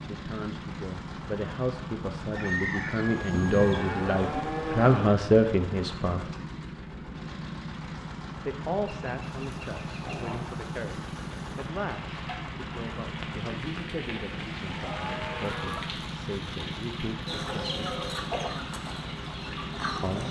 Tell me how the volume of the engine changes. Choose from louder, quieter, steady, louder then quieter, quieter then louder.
steady.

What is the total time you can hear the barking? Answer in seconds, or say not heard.
not heard.